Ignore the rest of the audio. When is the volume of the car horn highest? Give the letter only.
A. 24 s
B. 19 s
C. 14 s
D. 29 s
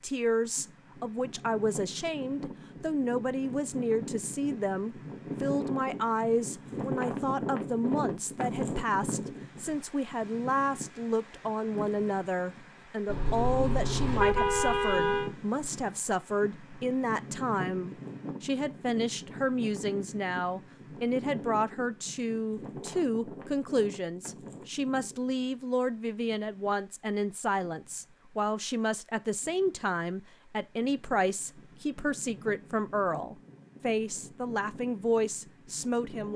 C.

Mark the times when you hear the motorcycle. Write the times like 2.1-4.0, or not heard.
not heard.